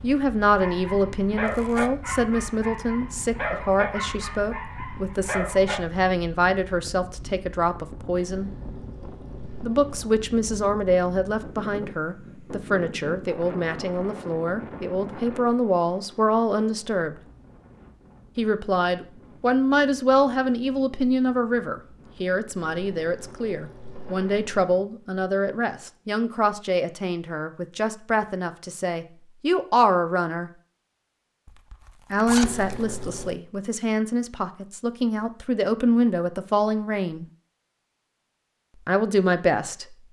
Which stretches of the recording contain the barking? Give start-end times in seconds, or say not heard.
0.6-5.8.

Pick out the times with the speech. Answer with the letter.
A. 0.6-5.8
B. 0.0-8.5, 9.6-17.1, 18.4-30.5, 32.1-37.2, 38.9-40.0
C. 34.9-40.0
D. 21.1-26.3
B.